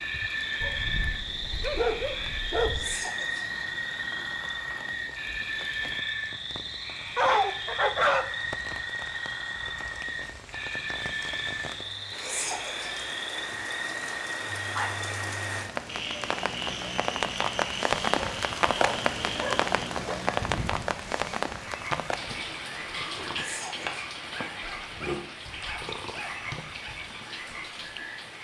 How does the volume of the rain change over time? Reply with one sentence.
The volume of the rain goes up, then down.